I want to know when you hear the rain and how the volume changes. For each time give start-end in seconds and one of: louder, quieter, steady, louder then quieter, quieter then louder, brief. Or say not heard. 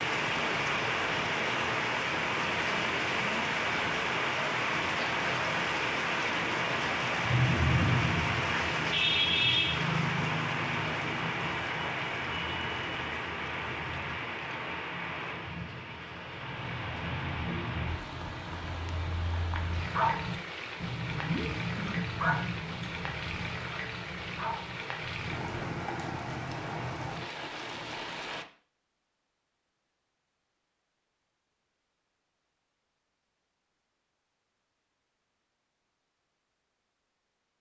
0.0-28.4 quieter.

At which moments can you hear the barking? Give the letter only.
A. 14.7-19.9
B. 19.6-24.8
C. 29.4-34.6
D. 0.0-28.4
B.